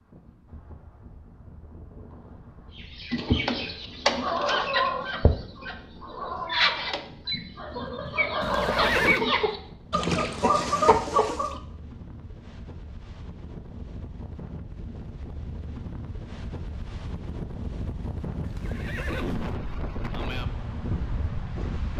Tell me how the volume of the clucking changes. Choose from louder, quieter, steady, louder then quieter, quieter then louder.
quieter then louder.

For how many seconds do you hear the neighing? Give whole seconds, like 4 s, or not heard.
2 s.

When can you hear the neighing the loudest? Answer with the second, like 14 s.
9 s.